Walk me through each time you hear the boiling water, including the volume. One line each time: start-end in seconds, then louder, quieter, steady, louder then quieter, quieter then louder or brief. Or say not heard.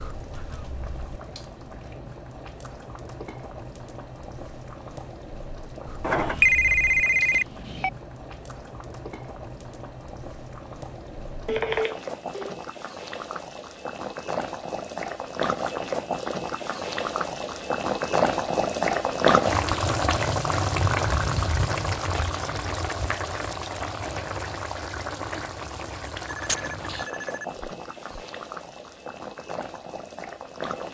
0.0-30.9 louder then quieter.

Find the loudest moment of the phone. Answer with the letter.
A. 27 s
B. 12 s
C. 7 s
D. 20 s
C.